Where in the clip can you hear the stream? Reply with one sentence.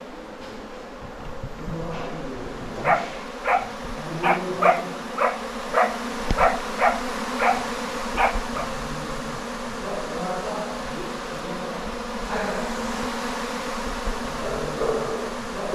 The stream can't be heard in this clip.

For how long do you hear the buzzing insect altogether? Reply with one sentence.
You can hear the buzzing insect for 16 seconds altogether.